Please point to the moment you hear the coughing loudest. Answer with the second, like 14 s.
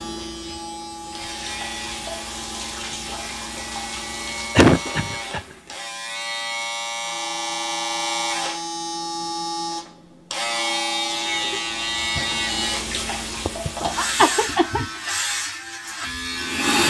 5 s.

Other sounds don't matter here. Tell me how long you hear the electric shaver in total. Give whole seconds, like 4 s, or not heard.
17 s.